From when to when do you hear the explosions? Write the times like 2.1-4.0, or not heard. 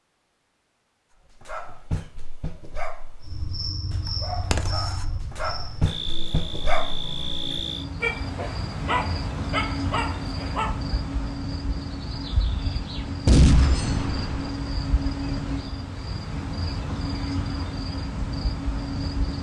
13.2-14.5.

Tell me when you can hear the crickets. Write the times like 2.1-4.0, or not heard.
3.2-19.3.